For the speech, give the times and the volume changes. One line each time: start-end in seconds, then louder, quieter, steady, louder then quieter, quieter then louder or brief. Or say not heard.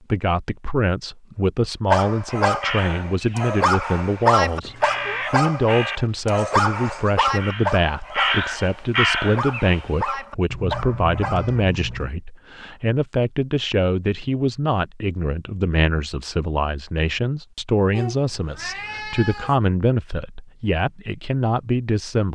0.1-22.3 steady.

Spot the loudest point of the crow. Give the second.
9 s.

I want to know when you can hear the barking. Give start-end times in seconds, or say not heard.
1.9-11.7.